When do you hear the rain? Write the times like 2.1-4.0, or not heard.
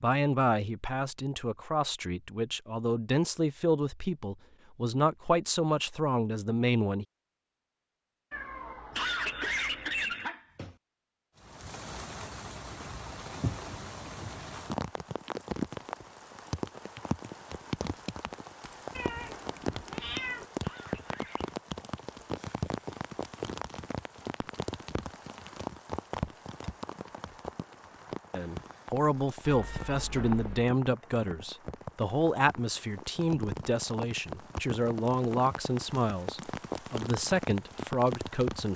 11.3-38.7.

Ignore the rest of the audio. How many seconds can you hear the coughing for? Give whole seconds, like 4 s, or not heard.
3 s.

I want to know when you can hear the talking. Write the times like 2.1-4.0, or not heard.
0.0-7.0, 28.3-38.7.